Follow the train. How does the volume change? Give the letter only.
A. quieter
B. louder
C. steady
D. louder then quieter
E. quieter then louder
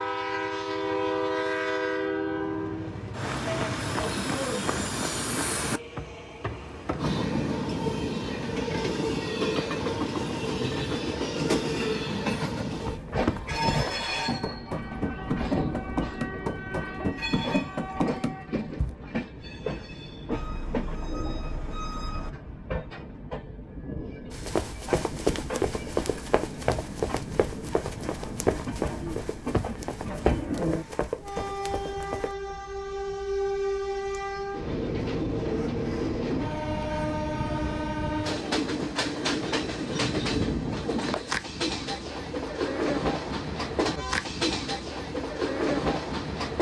E.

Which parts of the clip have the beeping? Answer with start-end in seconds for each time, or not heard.
20.3-22.3.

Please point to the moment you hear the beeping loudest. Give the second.
22 s.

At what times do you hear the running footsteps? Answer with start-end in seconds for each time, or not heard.
12.7-18.9, 24.3-32.4.